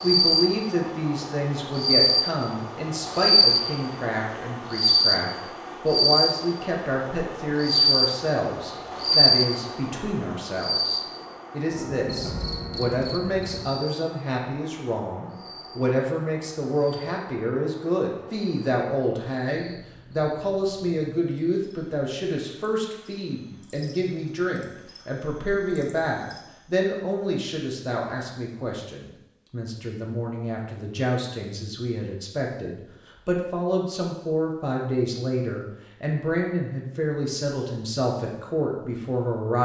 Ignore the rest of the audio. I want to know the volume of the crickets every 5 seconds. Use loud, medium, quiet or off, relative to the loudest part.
loud, loud, medium, quiet, quiet, quiet, off, off.